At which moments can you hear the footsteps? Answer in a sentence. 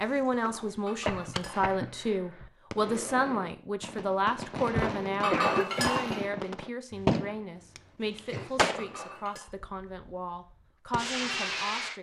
The footsteps can't be heard in this clip.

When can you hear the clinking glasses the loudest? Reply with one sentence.
The volume of the clinking glasses peaks at 5 seconds.